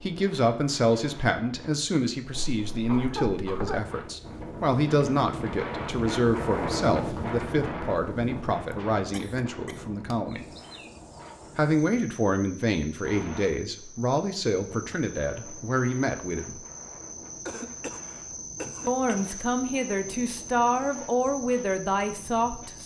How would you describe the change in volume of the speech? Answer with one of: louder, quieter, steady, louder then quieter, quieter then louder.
steady.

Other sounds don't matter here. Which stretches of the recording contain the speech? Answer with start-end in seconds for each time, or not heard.
0.0-10.4, 11.6-16.6, 18.9-22.8.